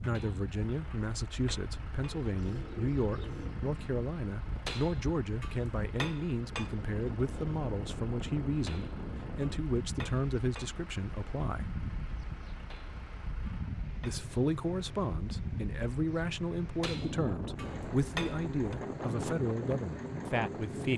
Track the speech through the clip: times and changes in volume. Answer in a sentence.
The speech can be heard from 0.1 to 11.7 s, at a steady volume; and from 14.0 to 20.9 s, at a steady volume.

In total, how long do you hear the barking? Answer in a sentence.
The barking can't be heard in this clip.